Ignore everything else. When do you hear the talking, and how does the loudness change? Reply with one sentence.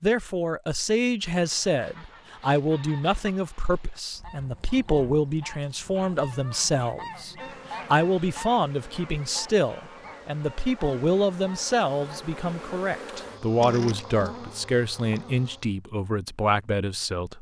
The talking can be heard from 0.0 to 17.3 s, at a steady volume.